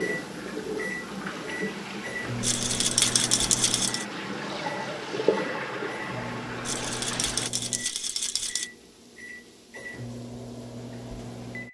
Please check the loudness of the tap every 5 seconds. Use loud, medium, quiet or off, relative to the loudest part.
loud, loud, off.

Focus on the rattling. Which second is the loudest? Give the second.
3 s.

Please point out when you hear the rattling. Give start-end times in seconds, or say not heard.
2.4-4.0, 6.7-8.7.